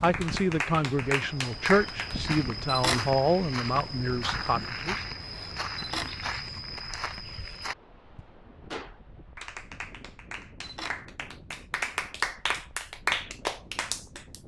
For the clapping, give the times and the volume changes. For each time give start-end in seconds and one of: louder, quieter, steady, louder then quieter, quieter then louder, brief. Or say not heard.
0.0-2.4 brief
8.7-14.4 louder.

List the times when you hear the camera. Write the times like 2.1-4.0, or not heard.
2.6-3.1, 5.8-6.2, 10.6-11.1.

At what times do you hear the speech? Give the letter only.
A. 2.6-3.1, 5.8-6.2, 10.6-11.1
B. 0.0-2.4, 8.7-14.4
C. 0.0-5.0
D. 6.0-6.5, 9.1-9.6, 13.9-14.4
C.